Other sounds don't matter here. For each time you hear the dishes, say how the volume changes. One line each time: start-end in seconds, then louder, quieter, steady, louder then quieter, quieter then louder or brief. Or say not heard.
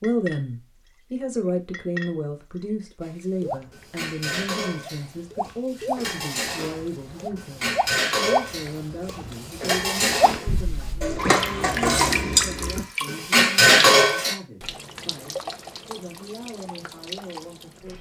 3.0-14.3 louder.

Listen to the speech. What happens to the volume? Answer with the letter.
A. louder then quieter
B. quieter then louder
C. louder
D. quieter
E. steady
D.